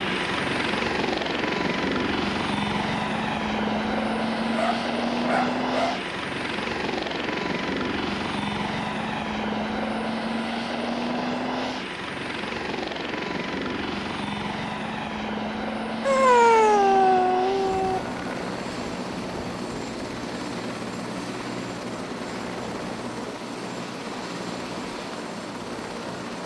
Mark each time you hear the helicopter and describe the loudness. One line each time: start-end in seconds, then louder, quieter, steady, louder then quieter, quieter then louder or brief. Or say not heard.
0.0-26.4 quieter.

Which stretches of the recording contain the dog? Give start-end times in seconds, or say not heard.
4.5-6.1, 16.1-18.0.